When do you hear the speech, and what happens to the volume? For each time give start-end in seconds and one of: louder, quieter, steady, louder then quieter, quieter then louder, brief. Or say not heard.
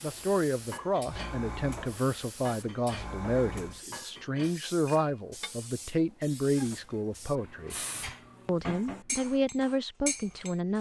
0.0-7.8 steady
8.4-10.7 brief.